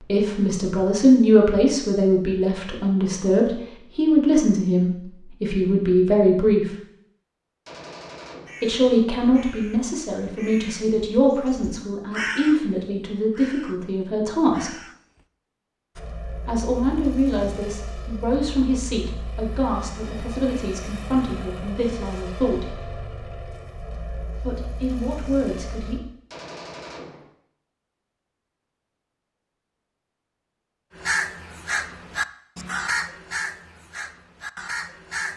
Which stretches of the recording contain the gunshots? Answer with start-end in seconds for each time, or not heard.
7.7-8.7, 26.3-27.3.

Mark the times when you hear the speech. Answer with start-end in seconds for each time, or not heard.
0.1-6.7, 8.6-14.7, 16.4-22.8, 24.4-26.0.